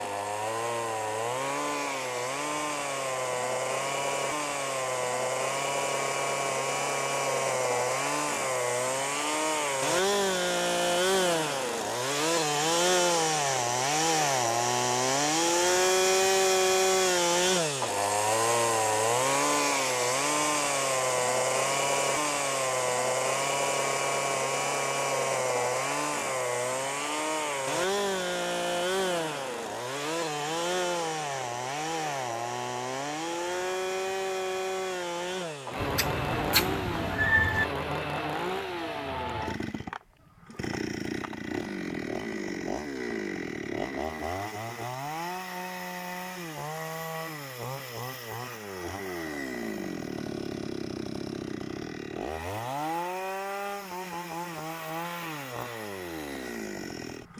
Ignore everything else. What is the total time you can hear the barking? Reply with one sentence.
The barking can't be heard in this clip.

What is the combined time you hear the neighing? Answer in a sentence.
You can hear the neighing for 2 seconds altogether.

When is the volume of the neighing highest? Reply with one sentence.
The volume of the neighing peaks at 37 seconds.